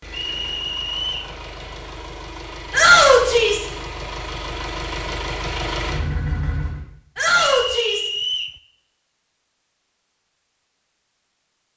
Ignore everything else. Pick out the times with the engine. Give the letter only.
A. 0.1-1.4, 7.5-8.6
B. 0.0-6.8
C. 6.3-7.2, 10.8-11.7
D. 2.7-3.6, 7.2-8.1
B.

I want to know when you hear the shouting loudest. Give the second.
3 s.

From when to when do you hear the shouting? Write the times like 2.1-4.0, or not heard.
2.7-3.6, 7.2-8.1.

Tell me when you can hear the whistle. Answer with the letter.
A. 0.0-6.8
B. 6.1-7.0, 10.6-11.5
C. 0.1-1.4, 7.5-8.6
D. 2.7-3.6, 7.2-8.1
C.